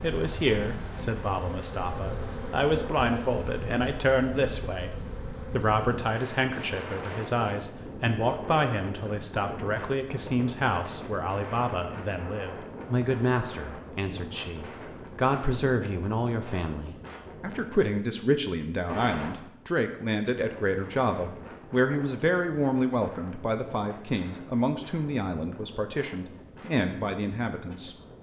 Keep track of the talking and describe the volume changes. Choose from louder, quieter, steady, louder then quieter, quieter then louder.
steady.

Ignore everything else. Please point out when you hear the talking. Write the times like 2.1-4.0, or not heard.
0.0-27.9.